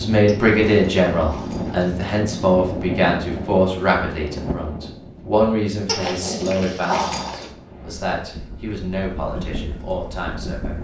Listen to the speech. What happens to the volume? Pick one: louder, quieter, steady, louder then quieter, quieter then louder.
quieter.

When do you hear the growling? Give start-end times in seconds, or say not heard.
0.2-2.0, 5.8-7.5.